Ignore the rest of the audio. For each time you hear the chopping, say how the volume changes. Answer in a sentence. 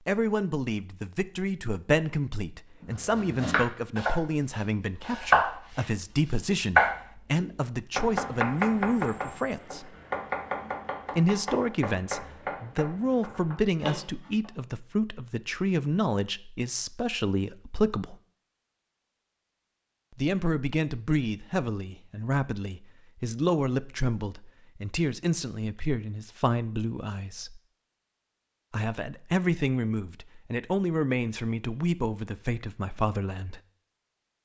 The chopping can be heard briefly from 2.8 to 4.2 s; briefly from 5.0 to 5.9 s; and from 6.8 to 14.5 s, getting quieter.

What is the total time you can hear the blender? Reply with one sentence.
The blender can't be heard in this clip.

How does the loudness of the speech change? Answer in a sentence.
The volume of the speech stays about the same.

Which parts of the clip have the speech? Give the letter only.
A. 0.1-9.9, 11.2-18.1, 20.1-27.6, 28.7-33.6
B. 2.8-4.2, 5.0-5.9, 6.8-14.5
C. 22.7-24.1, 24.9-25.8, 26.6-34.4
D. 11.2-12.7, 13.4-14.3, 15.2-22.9
A.